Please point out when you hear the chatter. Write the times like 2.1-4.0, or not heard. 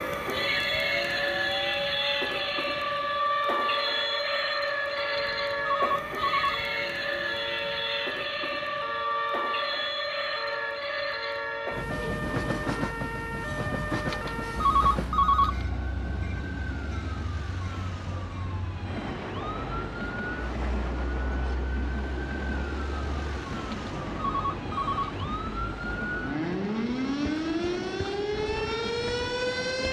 not heard.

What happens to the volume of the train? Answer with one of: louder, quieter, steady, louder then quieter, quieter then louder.
quieter.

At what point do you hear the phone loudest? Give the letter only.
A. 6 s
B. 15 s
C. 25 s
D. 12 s
B.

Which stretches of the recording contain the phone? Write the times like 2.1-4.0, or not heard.
5.2-6.7, 14.1-15.7, 23.7-25.2.